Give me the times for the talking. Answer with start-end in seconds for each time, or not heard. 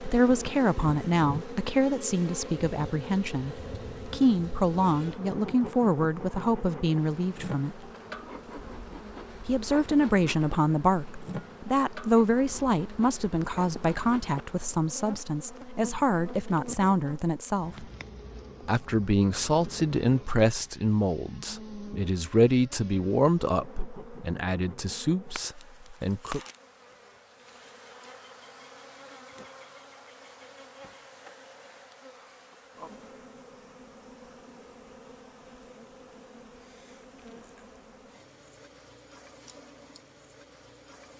0.0-7.8, 9.4-17.9, 18.6-26.4.